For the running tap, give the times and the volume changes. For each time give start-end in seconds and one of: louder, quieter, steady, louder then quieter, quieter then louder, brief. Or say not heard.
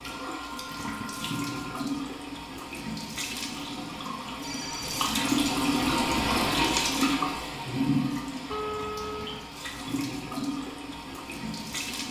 0.0-12.0 louder then quieter.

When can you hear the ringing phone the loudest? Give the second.
9 s.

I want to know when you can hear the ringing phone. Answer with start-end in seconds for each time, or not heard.
0.1-1.8, 4.4-4.9, 8.5-9.4.